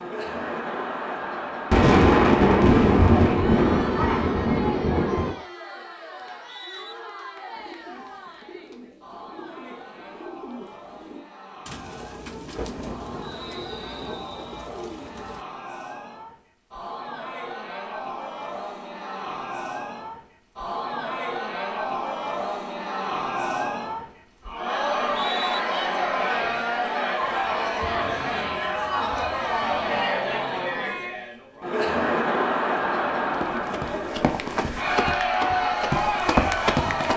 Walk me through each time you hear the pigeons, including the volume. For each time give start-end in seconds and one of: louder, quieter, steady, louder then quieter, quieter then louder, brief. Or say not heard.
7.5-15.4 louder.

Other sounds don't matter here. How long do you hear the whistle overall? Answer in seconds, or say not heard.
3 s.